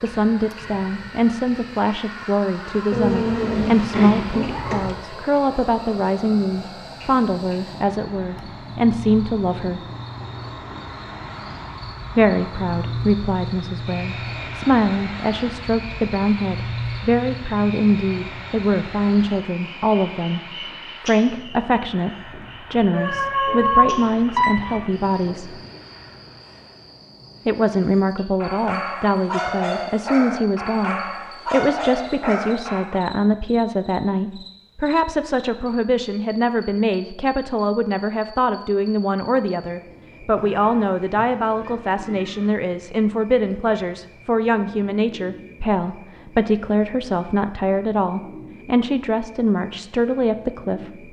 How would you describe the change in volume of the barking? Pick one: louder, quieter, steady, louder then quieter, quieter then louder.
steady.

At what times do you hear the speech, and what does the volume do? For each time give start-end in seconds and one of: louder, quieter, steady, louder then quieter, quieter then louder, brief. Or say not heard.
0.0-9.8 steady
12.2-25.6 steady
27.4-51.0 steady.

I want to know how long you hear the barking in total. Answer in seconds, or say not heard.
5 s.